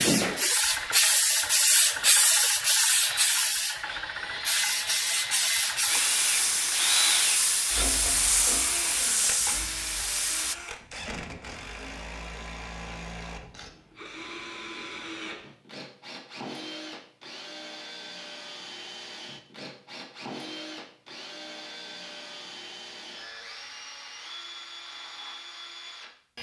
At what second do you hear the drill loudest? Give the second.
7 s.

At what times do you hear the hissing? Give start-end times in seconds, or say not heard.
0.0-10.6.